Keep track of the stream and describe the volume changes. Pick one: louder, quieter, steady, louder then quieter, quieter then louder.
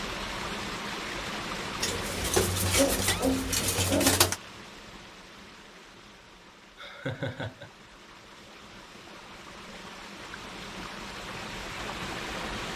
quieter then louder.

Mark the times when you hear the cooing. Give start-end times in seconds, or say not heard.
1.8-4.4.